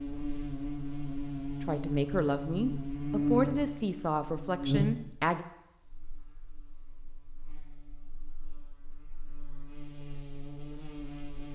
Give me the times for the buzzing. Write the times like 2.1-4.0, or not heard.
0.0-11.5.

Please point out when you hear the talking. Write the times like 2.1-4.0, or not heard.
1.6-5.5.